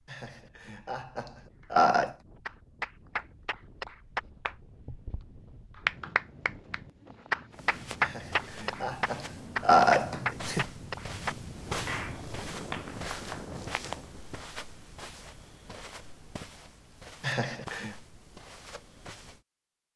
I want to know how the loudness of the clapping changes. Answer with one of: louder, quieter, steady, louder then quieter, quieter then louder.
louder then quieter.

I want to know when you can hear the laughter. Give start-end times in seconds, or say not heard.
0.1-2.1, 8.0-10.7, 17.2-17.9.